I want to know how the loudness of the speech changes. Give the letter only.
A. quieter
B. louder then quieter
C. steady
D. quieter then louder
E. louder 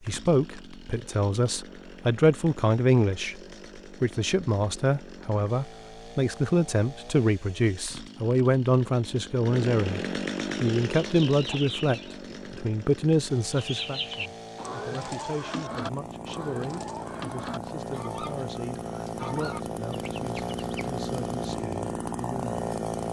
A.